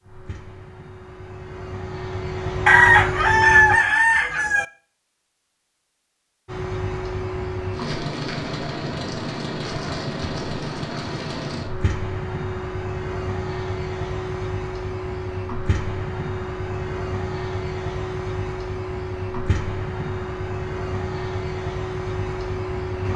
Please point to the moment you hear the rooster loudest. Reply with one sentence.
The volume of the rooster peaks at 3 seconds.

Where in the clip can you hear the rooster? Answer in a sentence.
You can hear the rooster from 2.6 to 4.7 s.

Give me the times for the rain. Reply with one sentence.
The rain can't be heard in this clip.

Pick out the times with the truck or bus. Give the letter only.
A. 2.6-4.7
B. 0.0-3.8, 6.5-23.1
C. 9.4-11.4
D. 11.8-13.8
B.